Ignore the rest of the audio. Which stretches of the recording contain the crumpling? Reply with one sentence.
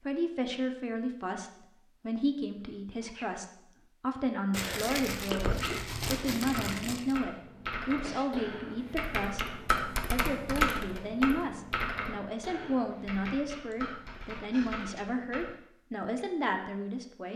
You can hear the crumpling from 4.5 to 7.2 s.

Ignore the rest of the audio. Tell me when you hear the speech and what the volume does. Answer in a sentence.
You can hear the speech from 0.0 to 17.3 s, at a steady volume.